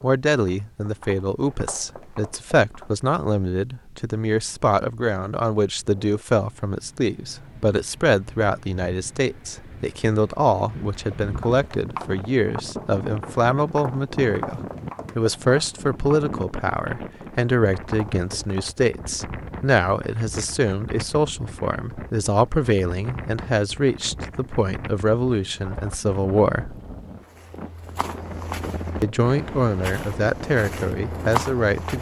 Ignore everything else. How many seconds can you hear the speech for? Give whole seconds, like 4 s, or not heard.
30 s.